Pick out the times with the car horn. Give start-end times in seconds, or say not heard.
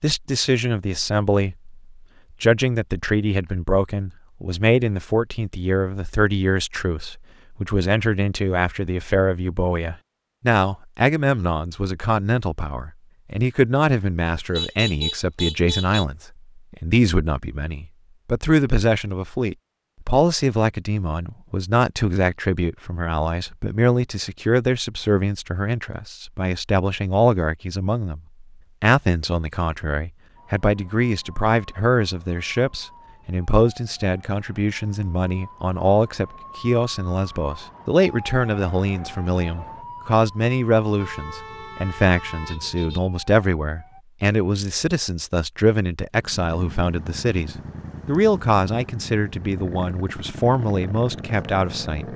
14.2-16.1, 41.0-43.0.